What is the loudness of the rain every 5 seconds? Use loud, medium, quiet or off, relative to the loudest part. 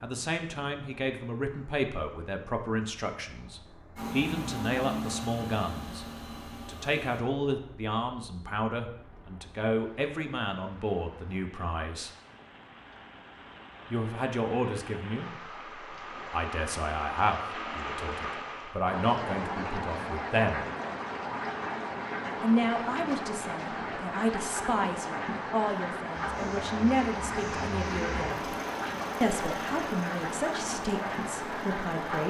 quiet, quiet, quiet, loud, loud, loud, loud.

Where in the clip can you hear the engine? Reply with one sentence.
You can hear the engine from 4.0 to 7.2 s and from 26.1 to 32.2 s.